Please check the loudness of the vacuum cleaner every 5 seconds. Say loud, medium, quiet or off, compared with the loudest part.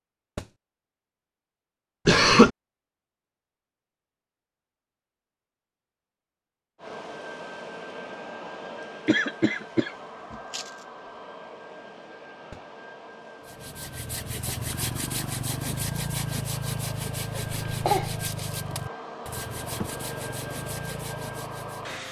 off, loud, medium, loud, loud.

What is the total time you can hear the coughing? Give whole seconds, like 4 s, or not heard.
3 s.